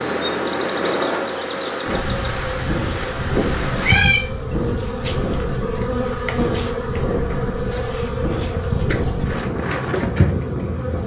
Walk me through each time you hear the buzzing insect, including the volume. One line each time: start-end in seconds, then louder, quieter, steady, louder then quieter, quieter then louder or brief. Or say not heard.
0.0-11.0 steady.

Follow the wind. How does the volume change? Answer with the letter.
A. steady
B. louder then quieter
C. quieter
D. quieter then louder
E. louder
A.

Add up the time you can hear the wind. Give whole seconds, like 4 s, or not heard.
11 s.